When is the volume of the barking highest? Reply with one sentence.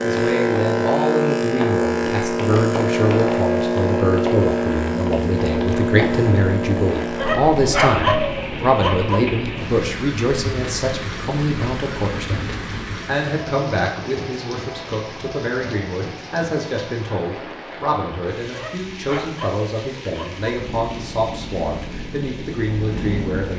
The loudest moment of the barking is at 8 seconds.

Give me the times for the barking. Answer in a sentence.
The barking can be heard from 7.2 to 9.2 s and from 18.5 to 20.5 s.